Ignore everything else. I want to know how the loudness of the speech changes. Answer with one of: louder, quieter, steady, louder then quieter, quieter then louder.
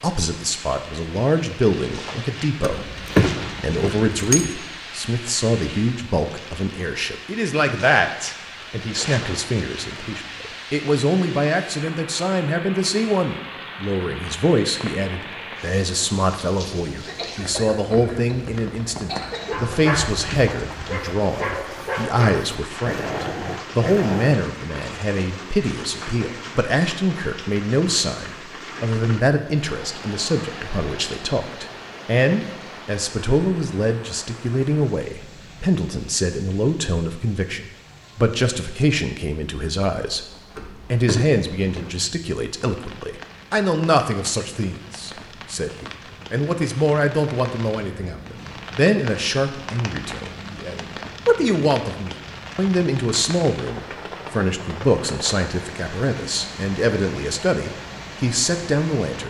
steady.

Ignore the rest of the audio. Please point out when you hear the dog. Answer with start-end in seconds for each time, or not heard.
19.4-24.4.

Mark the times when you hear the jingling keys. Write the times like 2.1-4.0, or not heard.
2.6-4.5, 40.5-41.9.